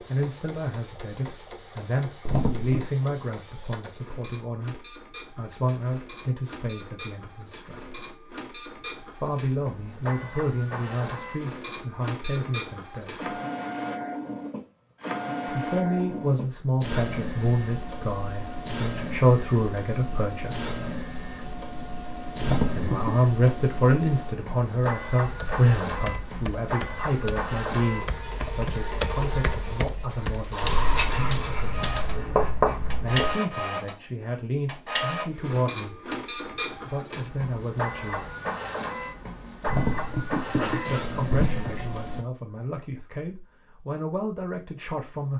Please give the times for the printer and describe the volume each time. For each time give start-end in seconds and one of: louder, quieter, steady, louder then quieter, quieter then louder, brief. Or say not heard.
0.0-42.2 louder.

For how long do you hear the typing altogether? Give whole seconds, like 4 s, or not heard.
7 s.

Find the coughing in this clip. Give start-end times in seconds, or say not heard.
2.2-3.0, 22.4-23.1, 39.6-42.0.